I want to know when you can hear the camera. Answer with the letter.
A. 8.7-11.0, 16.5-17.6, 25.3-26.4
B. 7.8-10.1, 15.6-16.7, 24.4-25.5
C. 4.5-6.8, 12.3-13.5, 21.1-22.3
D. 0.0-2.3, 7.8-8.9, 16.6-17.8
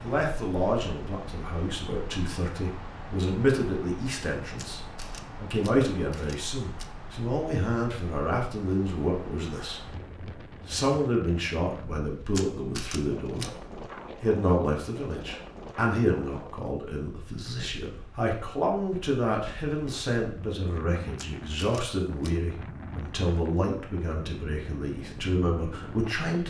C.